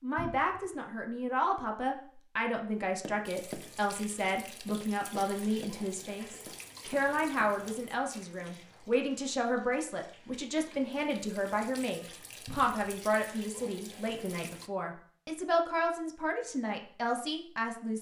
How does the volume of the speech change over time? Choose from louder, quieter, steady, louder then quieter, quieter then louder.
steady.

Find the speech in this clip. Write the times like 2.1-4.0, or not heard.
0.0-17.9.